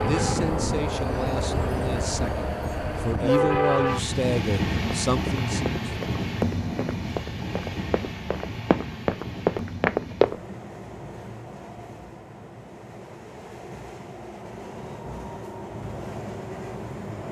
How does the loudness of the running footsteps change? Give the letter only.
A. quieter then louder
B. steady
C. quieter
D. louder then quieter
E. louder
A.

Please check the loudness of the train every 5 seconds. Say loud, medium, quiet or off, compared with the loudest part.
loud, medium, quiet, medium.